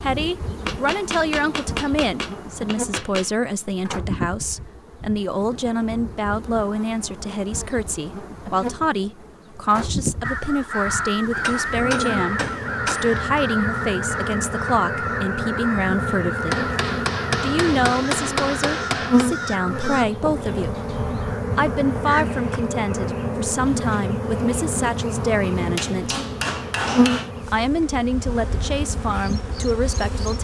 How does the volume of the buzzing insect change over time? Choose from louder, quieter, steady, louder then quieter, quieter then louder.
louder.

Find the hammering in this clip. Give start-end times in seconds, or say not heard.
0.7-3.3, 11.4-13.2, 16.5-19.3, 25.8-27.3.